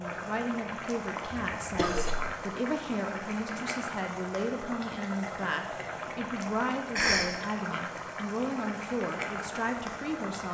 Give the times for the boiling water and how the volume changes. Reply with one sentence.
The boiling water can be heard from 0.0 to 10.4 s, at a steady volume.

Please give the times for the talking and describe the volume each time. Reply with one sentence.
The talking can be heard from 0.0 to 10.4 s, at a steady volume.